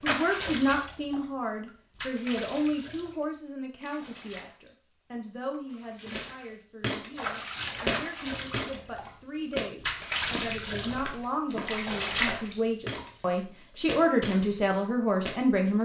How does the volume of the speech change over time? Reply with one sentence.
The volume of the speech goes down, then up.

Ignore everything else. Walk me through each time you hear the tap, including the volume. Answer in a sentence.
You can hear the tap from 0.0 to 13.1 s, getting quieter then louder.